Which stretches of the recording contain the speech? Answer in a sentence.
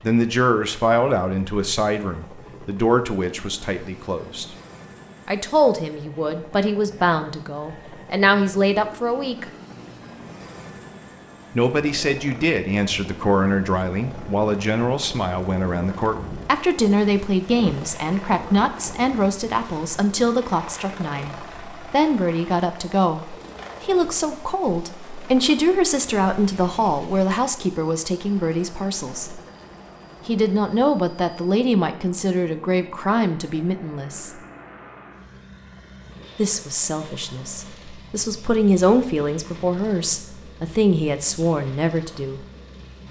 You can hear the speech from 0.0 to 4.5 s, from 5.2 to 9.4 s, from 11.6 to 29.4 s, from 30.2 to 34.3 s and from 36.4 to 42.4 s.